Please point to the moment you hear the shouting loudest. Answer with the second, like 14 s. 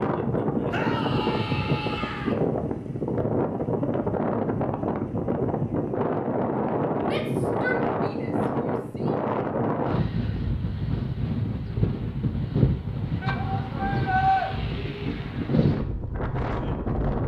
14 s.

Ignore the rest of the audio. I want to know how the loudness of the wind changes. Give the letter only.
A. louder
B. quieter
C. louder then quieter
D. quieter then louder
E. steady
E.